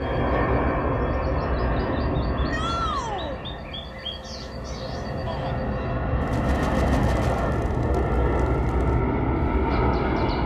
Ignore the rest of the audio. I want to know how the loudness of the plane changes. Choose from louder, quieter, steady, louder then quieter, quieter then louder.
quieter then louder.